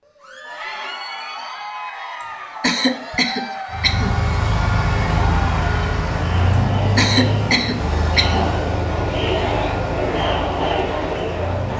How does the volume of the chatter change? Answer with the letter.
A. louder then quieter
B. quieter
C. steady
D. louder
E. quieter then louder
D.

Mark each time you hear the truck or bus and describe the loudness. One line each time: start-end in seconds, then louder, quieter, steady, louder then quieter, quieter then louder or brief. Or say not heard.
3.7-11.7 quieter.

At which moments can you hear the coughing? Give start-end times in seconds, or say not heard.
2.2-4.2, 7.0-8.4.